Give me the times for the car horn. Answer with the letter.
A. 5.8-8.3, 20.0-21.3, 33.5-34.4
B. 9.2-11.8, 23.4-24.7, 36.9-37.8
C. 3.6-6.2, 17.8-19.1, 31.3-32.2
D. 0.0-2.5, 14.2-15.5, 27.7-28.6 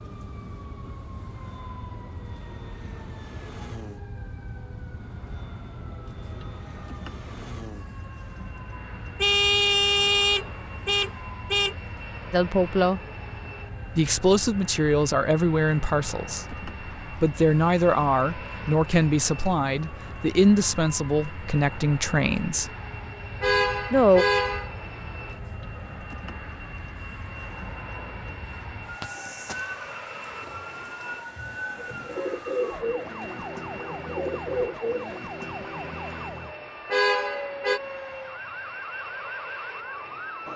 B.